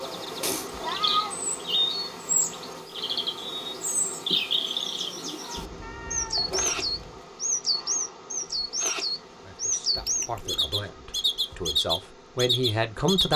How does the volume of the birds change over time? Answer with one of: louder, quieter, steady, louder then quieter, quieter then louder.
steady.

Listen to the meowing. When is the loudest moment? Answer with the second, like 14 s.
1 s.